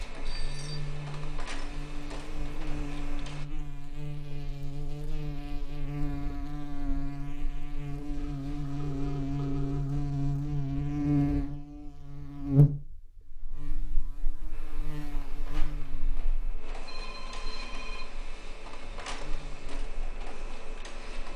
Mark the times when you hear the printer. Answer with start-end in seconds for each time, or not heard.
0.0-3.5, 14.5-21.3.